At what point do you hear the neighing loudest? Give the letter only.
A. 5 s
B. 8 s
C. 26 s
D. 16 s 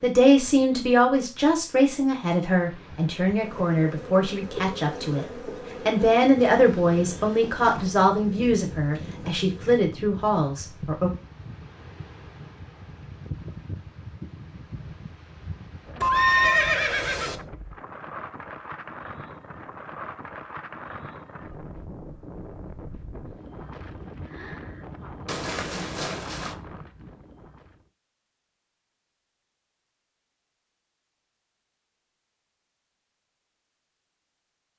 D.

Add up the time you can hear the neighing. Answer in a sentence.
You can hear the neighing for 4 seconds altogether.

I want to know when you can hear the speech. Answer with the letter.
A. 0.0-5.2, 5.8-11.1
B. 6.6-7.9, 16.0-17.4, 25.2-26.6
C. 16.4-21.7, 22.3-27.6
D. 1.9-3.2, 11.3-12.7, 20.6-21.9
A.